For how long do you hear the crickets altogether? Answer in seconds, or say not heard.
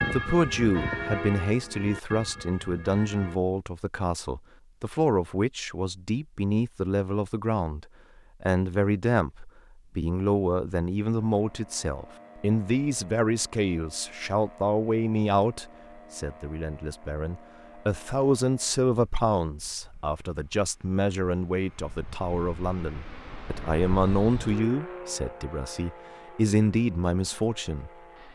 not heard.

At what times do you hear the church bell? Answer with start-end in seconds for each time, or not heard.
0.0-3.4.